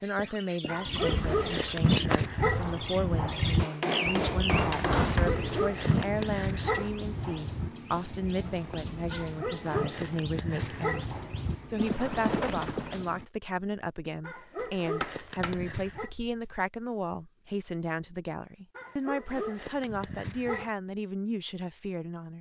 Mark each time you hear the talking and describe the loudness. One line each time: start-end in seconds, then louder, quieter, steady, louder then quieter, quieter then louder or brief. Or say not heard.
0.0-22.3 steady.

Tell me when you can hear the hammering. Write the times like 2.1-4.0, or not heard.
3.5-5.3, 14.6-16.6.